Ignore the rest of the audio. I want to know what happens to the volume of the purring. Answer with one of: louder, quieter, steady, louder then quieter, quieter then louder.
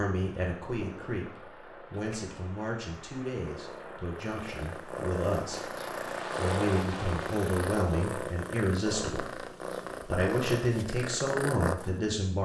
louder.